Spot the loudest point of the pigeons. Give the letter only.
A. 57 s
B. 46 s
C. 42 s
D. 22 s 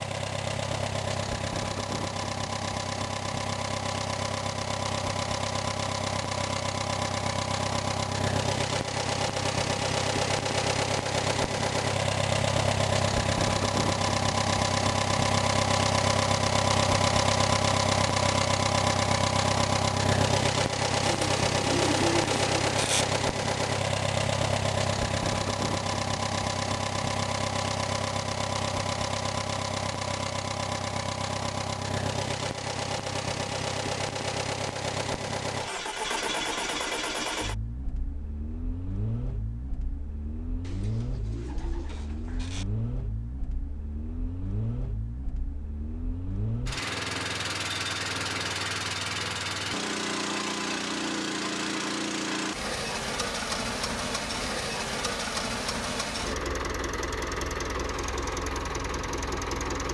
D.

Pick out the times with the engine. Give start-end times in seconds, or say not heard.
0.0-59.9.